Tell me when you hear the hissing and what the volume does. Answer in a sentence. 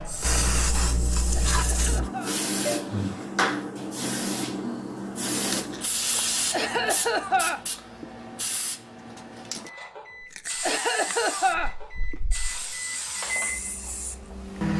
The hissing can be heard from 0.0 to 14.7 s, getting quieter.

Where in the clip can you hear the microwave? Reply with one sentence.
You can hear the microwave from 9.6 to 14.7 s.